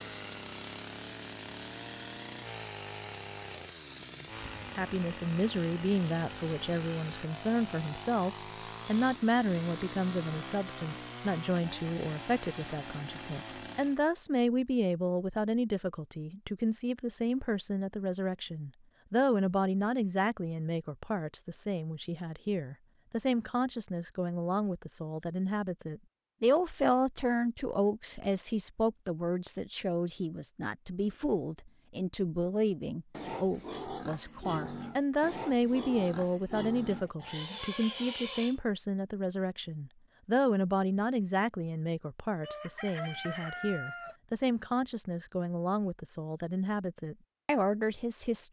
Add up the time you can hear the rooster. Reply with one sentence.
You can hear the rooster for 2 seconds altogether.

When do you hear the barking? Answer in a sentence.
The barking can't be heard in this clip.